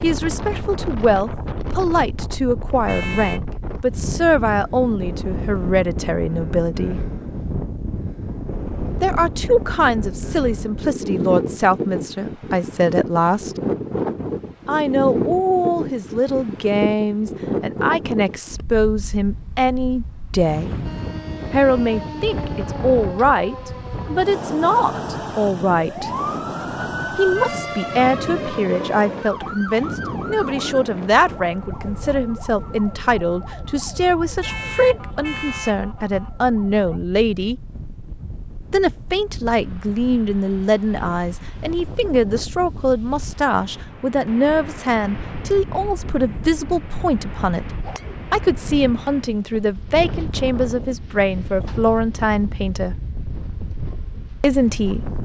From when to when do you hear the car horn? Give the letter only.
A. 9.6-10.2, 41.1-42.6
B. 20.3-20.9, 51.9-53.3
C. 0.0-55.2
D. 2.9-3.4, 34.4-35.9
D.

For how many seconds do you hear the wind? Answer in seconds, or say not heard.
55 s.